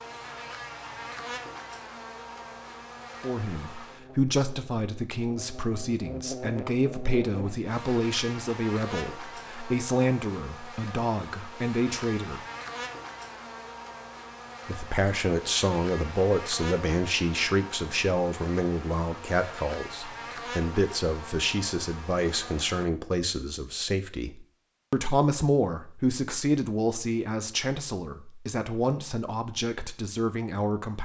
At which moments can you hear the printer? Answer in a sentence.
You can't hear the printer here.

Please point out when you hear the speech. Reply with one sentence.
You can hear the speech from 3.2 to 12.4 s and from 14.7 to 31.0 s.